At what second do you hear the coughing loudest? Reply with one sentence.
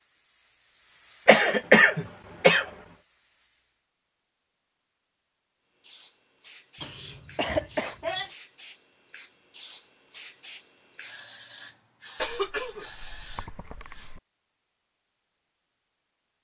The loudest moment of the coughing is at 2 seconds.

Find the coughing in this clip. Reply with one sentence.
You can hear the coughing from 1.2 to 2.7 s, from 6.8 to 8.3 s and from 12.2 to 14.2 s.